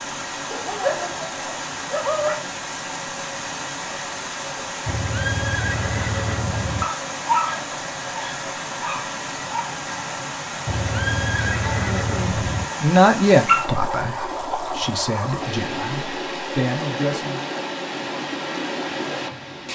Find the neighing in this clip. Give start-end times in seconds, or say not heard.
4.8-6.8, 10.7-12.7.